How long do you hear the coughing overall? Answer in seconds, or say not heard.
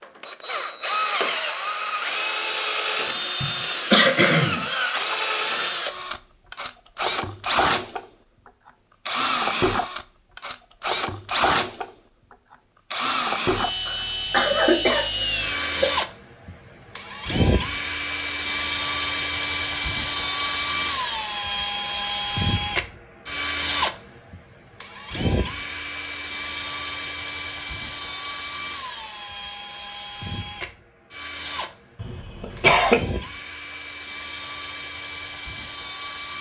4 s.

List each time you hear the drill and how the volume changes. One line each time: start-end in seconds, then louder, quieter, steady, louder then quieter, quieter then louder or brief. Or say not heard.
0.0-8.1 steady
9.1-11.9 brief
12.9-36.3 quieter.